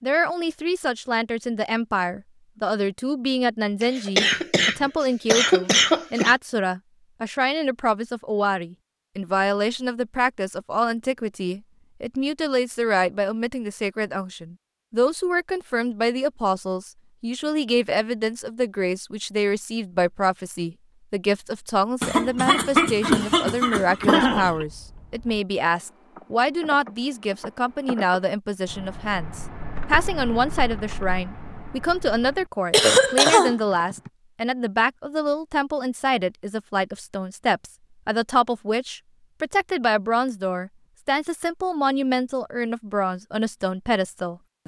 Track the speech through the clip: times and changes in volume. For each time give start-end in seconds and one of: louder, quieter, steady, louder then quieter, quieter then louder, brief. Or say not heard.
0.0-44.6 steady.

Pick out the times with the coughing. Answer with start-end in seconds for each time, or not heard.
3.8-6.3, 22.0-24.6, 32.7-33.5.